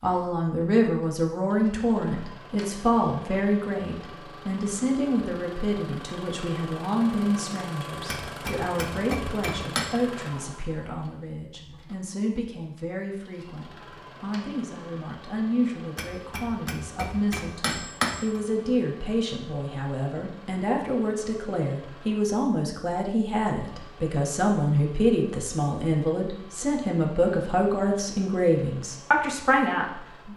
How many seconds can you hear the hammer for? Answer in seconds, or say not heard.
4 s.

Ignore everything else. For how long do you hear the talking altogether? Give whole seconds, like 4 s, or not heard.
30 s.